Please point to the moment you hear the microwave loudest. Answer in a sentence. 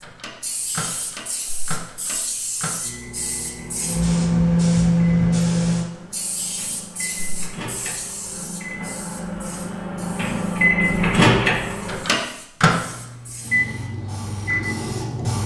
The loudest moment of the microwave is at 11 seconds.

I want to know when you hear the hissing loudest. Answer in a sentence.
The volume of the hissing peaks at 5 seconds.